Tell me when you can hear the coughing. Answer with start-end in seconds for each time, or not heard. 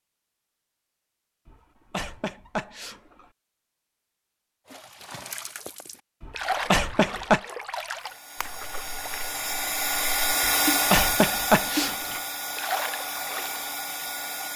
1.4-3.2, 6.2-7.4, 10.4-12.2.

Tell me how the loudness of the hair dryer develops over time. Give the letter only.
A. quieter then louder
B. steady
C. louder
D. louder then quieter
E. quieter
D.